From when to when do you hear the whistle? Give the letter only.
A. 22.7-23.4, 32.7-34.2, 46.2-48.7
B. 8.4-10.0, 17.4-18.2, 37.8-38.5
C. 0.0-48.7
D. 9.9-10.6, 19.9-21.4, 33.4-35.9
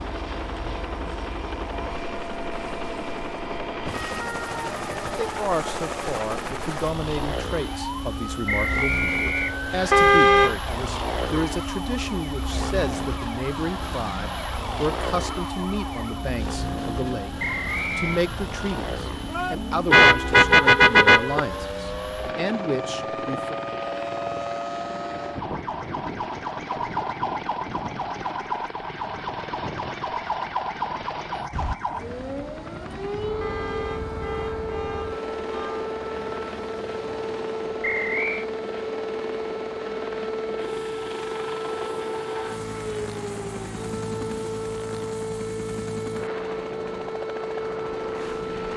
B.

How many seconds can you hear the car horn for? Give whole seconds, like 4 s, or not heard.
5 s.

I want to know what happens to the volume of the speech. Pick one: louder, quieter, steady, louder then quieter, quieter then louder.
steady.